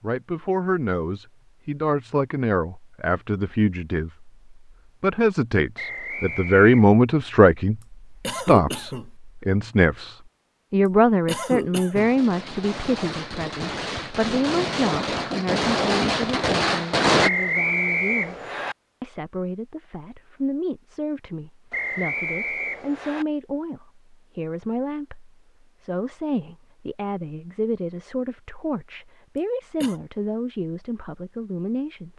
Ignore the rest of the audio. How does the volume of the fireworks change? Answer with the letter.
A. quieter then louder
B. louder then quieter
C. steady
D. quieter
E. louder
E.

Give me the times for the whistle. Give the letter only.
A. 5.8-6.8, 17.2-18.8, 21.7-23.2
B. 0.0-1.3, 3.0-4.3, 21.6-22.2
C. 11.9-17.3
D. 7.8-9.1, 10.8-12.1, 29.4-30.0
A.